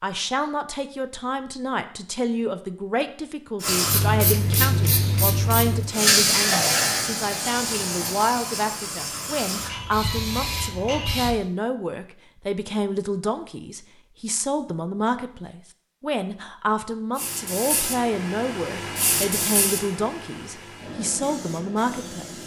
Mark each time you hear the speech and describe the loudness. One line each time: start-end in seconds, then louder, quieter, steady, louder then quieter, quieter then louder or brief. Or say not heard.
0.0-22.4 steady.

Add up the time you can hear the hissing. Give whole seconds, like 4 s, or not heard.
13 s.